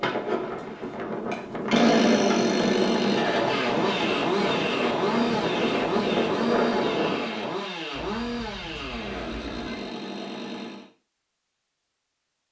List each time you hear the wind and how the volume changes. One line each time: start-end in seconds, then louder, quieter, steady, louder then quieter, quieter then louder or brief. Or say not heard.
0.0-7.3 louder.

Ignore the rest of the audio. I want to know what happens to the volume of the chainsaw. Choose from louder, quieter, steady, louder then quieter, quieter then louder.
quieter.